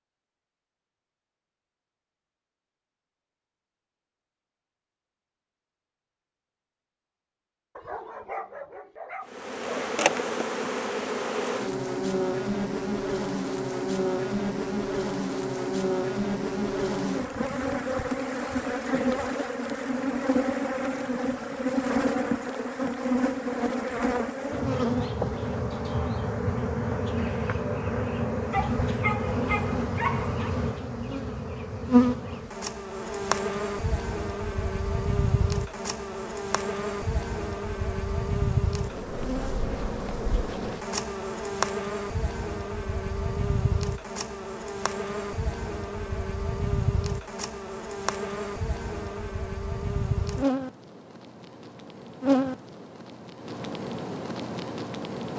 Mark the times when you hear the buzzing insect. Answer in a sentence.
The buzzing insect can be heard from 9.2 to 55.3 s.